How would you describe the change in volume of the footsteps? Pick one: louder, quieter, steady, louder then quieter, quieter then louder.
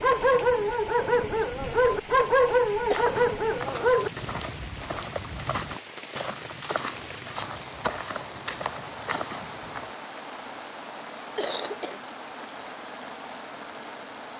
steady.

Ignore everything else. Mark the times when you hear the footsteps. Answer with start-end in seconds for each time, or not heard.
2.8-9.9.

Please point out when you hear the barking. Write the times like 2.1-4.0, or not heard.
0.0-4.2.